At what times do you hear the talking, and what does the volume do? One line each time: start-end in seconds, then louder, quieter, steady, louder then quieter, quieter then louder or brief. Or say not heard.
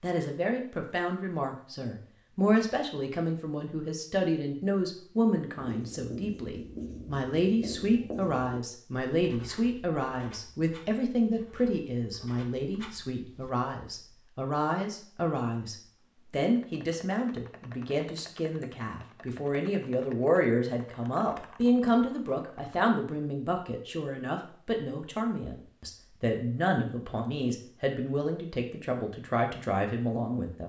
0.0-30.6 steady.